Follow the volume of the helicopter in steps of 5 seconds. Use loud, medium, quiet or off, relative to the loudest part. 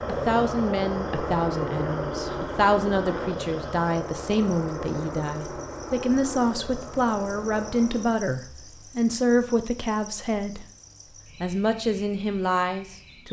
loud, medium, off.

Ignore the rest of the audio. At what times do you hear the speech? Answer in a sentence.
The speech can be heard from 0.1 to 10.7 s and from 11.4 to 13.2 s.